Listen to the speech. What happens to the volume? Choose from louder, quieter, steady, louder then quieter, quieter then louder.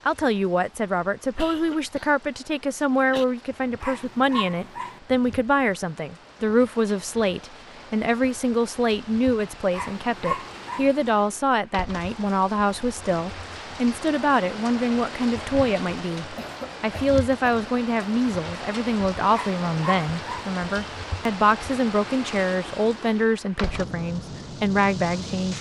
steady.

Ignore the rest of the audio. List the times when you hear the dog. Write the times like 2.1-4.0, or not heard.
3.8-5.0, 9.7-10.9, 19.3-20.5.